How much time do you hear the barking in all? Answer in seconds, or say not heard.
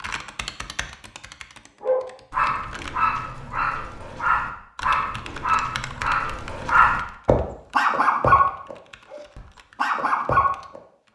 9 s.